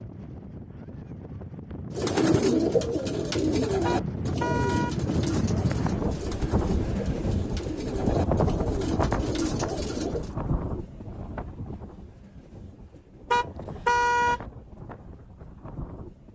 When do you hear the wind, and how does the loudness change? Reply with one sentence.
You can hear the wind from 0.0 to 16.2 s, getting louder then quieter.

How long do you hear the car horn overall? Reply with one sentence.
You can hear the car horn for 2 seconds altogether.